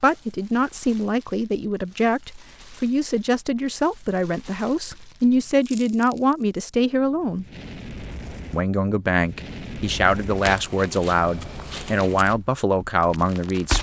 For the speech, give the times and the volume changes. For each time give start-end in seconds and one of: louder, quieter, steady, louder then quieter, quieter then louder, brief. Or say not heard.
0.0-7.5 steady
8.5-13.7 steady.